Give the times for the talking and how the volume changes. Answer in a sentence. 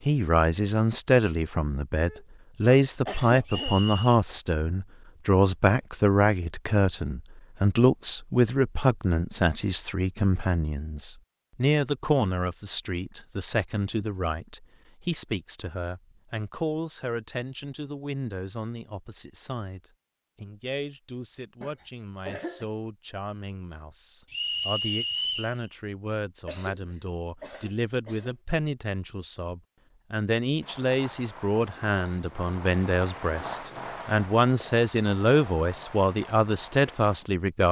The talking can be heard from 0.1 to 37.6 s, getting quieter then louder.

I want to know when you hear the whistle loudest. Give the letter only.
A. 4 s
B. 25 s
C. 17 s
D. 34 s
B.